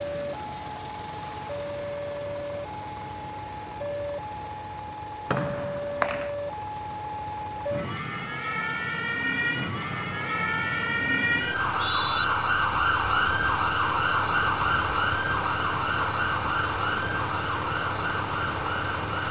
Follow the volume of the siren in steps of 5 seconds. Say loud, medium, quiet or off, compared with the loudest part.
medium, medium, loud, loud.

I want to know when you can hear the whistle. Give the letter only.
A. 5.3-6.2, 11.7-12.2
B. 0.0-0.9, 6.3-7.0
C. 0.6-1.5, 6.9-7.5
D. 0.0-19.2
A.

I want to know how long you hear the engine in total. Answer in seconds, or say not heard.
19 s.